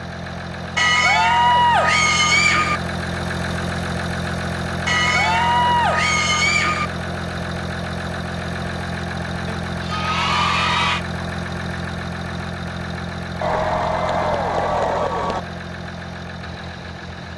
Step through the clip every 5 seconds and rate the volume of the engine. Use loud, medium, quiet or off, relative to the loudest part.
loud, loud, loud, medium.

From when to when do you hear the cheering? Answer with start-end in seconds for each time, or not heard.
0.8-2.8, 4.8-6.9, 9.4-11.1, 13.4-15.4.